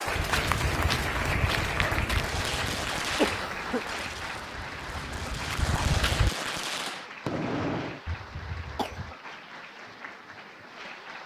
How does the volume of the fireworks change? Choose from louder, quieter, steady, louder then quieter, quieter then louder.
quieter then louder.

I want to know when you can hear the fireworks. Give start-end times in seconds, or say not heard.
2.1-8.0.